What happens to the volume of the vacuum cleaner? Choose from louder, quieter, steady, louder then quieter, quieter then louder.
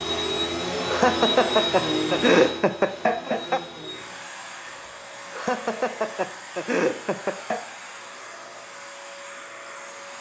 quieter.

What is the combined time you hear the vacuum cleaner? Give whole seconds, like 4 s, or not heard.
10 s.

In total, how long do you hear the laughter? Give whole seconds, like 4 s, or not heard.
5 s.